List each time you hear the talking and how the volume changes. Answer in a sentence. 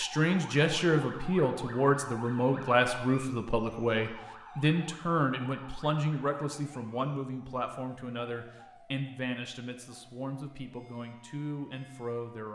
You can hear the talking from 0.0 to 12.5 s, getting quieter.